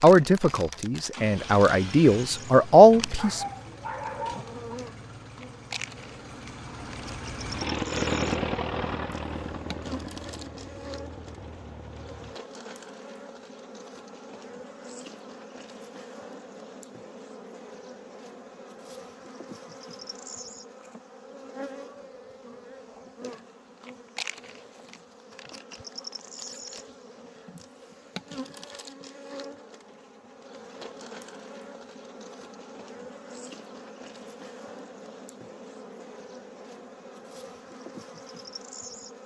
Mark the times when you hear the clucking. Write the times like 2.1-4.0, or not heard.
not heard.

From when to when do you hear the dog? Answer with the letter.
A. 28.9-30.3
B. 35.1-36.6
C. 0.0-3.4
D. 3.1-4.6
D.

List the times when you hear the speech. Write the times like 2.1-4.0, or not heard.
0.0-3.4.